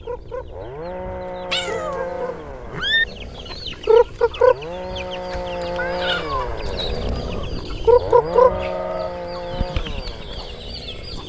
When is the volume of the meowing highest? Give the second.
3 s.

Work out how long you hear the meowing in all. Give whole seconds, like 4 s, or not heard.
2 s.